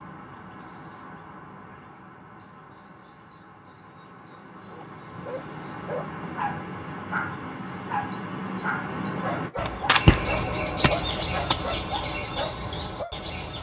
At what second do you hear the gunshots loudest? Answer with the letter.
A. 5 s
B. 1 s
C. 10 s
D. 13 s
C.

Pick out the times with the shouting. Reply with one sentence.
The shouting can't be heard in this clip.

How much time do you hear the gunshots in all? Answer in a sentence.
You can hear the gunshots for 2 seconds altogether.